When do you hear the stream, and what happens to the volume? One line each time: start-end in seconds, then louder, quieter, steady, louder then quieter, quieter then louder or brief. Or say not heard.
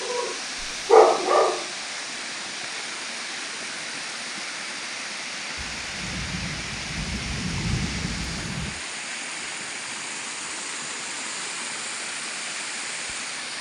0.0-13.5 steady.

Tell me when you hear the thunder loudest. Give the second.
8 s.